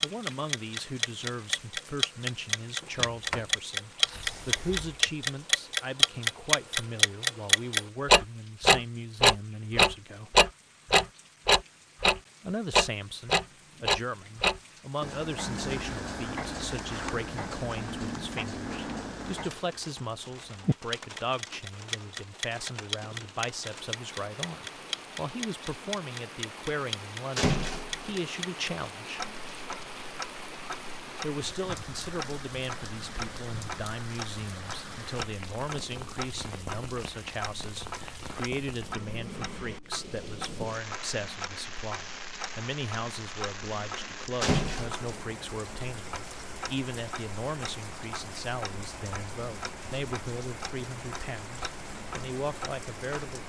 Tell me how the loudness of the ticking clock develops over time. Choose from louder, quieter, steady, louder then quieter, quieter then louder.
quieter.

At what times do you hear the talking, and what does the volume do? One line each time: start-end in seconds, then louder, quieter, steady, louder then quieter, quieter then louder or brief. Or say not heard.
0.0-10.3 steady
12.4-29.2 steady
31.2-53.4 steady.